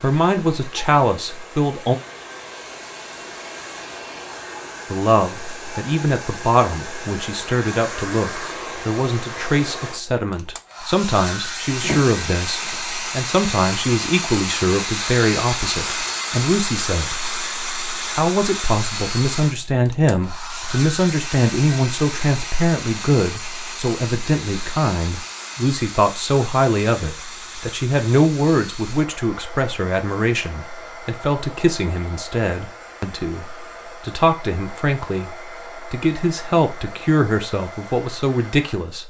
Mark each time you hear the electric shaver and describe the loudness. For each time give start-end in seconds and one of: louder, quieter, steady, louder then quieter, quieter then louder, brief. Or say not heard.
not heard.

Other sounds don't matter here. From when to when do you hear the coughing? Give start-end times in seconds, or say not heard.
11.8-12.8.